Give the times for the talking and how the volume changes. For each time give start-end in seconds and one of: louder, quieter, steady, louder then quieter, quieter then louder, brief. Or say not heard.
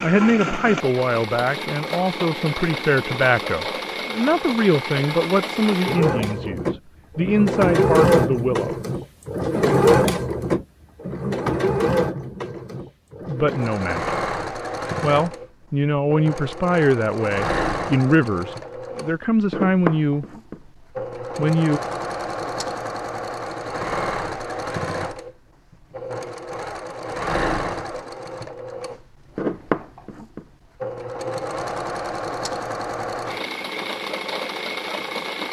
0.0-8.8 steady
13.2-14.2 brief
15.0-20.2 steady
21.4-21.8 brief.